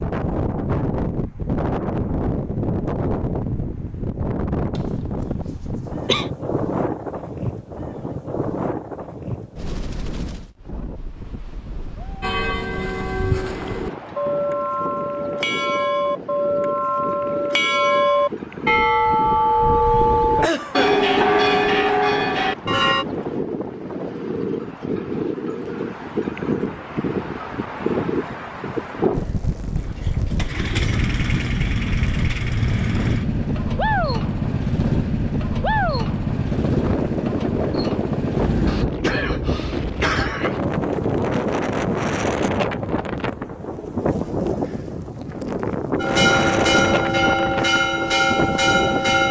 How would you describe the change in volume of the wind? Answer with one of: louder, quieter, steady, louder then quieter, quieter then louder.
quieter then louder.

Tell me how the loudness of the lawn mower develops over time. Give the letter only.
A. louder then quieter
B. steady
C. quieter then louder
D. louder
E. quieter
B.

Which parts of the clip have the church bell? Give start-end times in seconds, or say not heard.
12.2-23.1, 46.0-49.2.